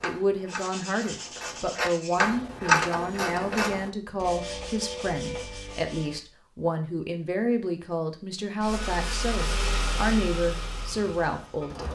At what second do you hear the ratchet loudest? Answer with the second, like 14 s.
3 s.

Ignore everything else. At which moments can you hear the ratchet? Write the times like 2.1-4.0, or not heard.
0.0-3.9.